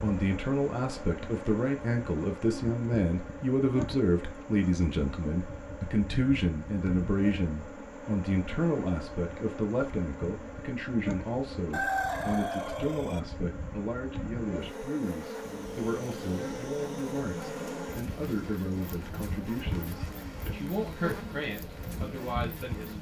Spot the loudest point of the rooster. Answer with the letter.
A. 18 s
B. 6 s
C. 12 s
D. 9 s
C.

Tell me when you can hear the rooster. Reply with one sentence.
The rooster can be heard from 11.7 to 13.2 s.